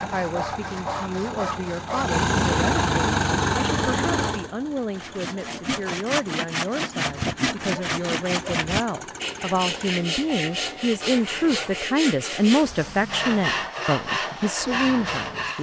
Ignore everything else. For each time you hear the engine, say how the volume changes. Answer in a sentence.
The engine can be heard from 0.0 to 15.5 s, getting quieter.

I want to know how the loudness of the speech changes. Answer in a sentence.
The volume of the speech goes up.